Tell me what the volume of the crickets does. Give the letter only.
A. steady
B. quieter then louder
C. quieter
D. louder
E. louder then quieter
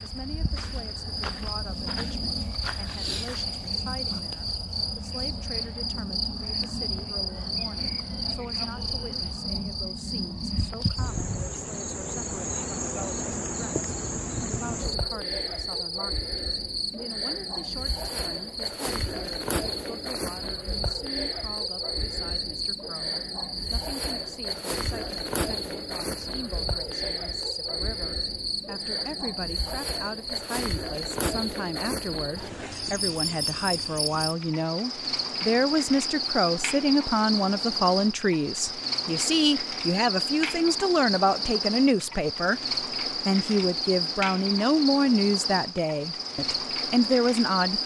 A.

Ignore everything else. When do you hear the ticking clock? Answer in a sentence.
The ticking clock can't be heard in this clip.